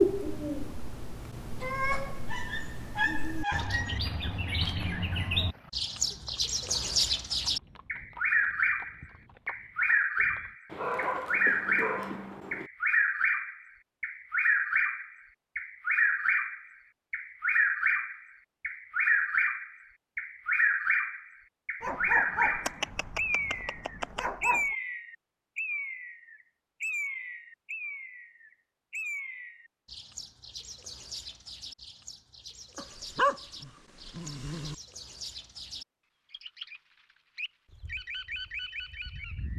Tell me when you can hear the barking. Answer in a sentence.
The barking can be heard from 2.2 to 4.0 s, from 10.7 to 12.7 s, from 21.8 to 24.8 s and from 32.8 to 34.8 s.